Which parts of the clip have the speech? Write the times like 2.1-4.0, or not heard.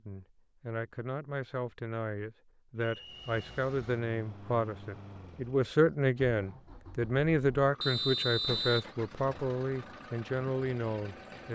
0.0-11.4.